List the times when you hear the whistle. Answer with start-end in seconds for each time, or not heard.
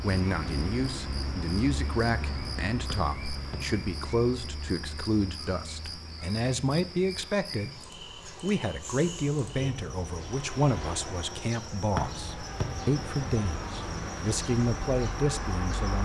2.9-3.6, 11.9-12.7.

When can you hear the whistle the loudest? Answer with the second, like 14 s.
12 s.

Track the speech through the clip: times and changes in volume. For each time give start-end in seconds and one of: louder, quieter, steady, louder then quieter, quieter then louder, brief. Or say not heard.
0.0-16.0 steady.